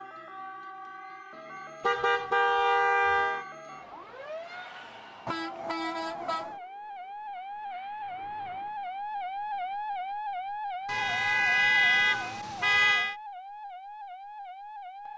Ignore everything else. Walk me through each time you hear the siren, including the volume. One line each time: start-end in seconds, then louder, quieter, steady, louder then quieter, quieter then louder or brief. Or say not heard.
0.0-15.1 louder then quieter.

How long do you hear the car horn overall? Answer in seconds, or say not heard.
5 s.